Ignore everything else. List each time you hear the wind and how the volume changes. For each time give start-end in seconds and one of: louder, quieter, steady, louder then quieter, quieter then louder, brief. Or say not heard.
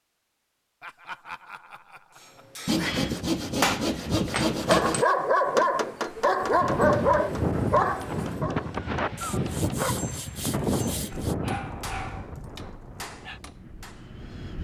6.4-14.5 quieter.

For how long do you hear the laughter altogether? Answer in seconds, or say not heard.
2 s.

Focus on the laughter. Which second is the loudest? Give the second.
1 s.